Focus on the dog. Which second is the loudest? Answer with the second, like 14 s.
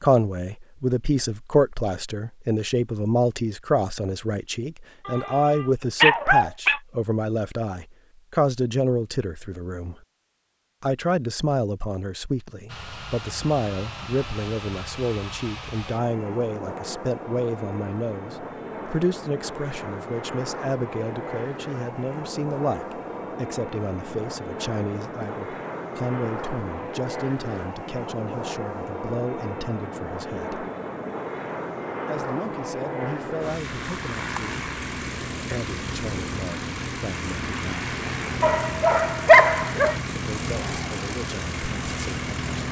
39 s.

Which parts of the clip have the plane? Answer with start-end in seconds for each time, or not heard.
12.7-42.6.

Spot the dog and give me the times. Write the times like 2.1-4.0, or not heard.
5.0-6.8, 38.4-40.0.